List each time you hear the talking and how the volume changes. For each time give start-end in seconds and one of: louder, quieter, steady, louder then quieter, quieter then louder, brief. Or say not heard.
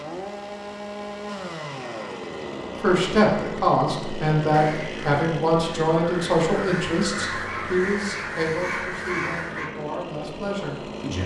2.8-11.2 quieter.